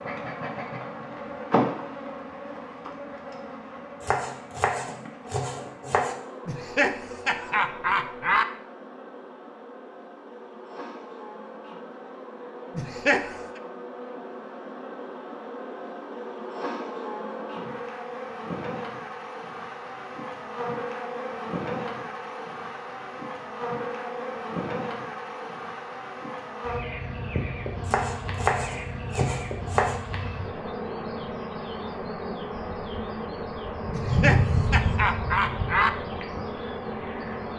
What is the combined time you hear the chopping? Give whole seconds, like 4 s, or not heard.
4 s.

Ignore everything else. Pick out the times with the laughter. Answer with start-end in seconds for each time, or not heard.
6.5-8.4, 12.8-13.6, 33.9-35.9.